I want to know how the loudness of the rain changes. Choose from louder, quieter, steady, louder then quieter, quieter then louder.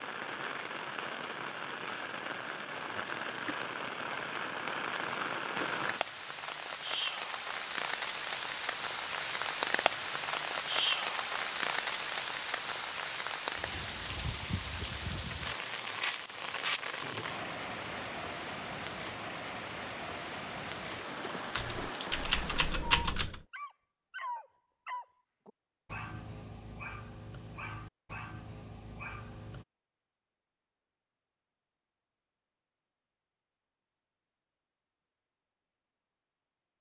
louder then quieter.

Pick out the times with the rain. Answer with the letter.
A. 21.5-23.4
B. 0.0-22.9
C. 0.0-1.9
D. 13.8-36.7
B.